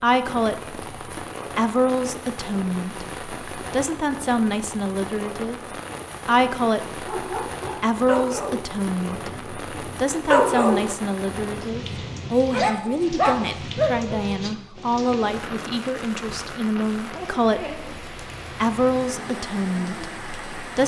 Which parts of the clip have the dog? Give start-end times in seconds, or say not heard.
7.0-14.3.